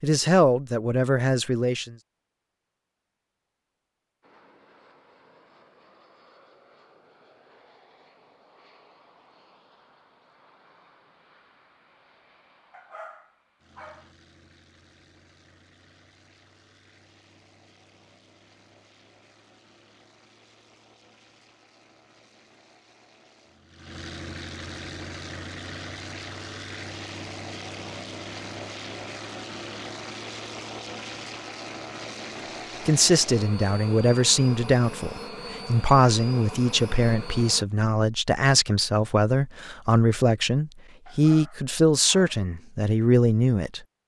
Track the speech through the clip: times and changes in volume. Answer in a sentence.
You can hear the speech briefly from 0.0 to 1.9 s; and from 32.9 to 43.8 s, at a steady volume.